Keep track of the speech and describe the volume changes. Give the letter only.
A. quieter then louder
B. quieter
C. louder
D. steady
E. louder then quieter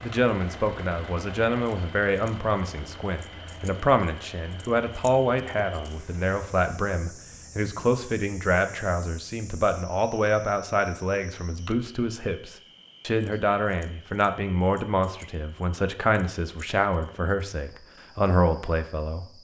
D.